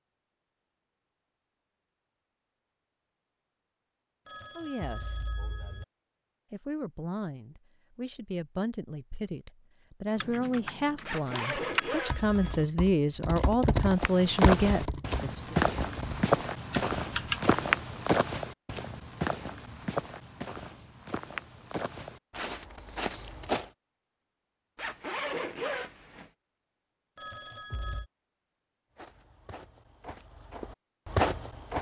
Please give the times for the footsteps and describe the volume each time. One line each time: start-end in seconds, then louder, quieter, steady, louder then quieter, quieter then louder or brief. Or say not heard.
13.9-23.7 quieter
28.9-31.7 brief.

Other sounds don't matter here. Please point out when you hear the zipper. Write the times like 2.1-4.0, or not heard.
11.1-12.7, 24.8-26.3.